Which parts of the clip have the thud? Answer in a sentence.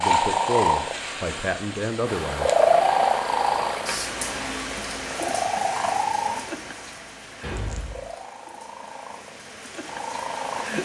The thud can be heard from 7.4 to 8.1 s.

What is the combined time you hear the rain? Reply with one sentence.
You can hear the rain for 9 seconds altogether.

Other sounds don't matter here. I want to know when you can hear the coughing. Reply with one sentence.
You can't hear the coughing here.